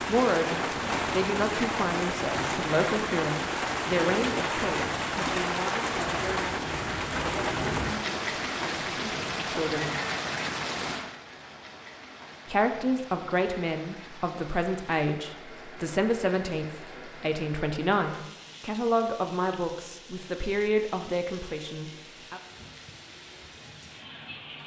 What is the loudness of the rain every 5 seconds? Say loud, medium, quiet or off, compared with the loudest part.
loud, loud, medium, quiet, quiet.